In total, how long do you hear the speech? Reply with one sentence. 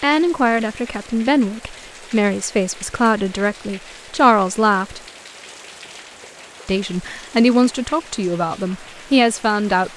The speech can be heard for 8 seconds in total.